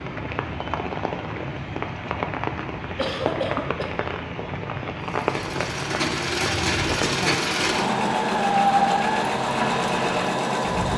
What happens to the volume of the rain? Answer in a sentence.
The loudness of the rain stays about the same.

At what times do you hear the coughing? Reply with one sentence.
You can hear the coughing from 3.0 to 3.9 s.